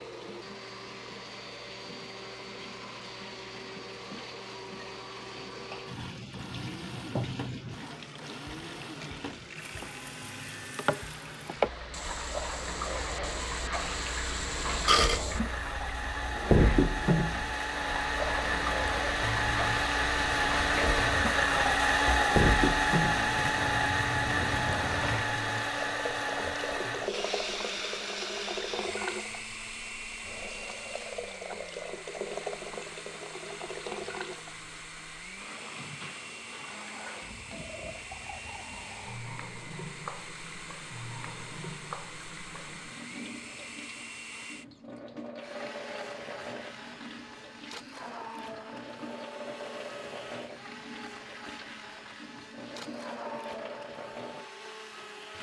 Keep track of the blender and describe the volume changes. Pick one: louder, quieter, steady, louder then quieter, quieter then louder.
louder then quieter.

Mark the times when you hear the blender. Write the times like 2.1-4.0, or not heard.
0.0-55.3.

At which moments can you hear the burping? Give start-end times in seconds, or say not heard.
14.8-15.7.